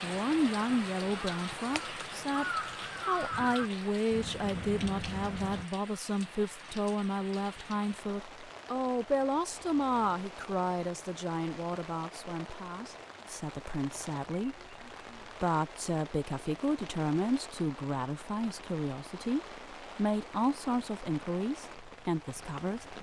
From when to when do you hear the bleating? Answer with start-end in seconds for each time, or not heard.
not heard.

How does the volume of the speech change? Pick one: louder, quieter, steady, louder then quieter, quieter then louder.
steady.